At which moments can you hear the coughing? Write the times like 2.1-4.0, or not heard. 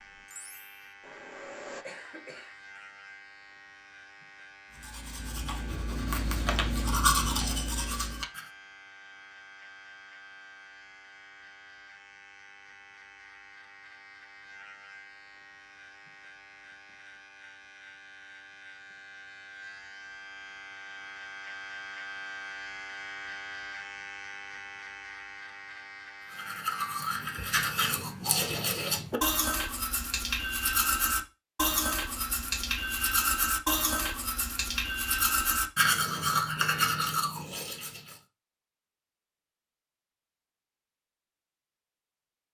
1.8-2.6.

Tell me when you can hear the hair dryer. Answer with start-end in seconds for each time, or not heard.
0.2-1.9.